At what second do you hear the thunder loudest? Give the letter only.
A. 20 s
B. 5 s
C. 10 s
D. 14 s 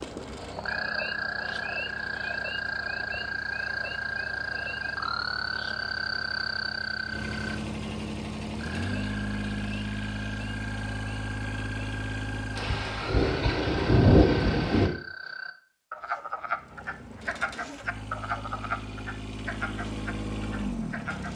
D.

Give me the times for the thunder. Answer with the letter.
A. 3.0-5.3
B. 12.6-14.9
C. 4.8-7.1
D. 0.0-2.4
B.